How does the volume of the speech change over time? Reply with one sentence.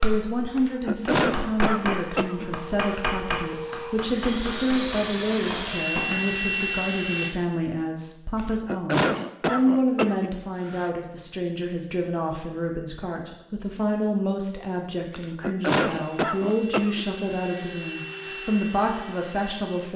The volume of the speech stays about the same.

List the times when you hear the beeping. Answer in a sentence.
You can't hear the beeping here.